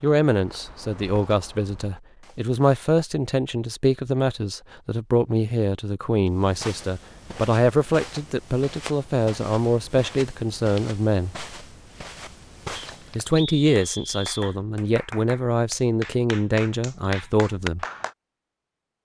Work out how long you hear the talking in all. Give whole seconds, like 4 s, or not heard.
16 s.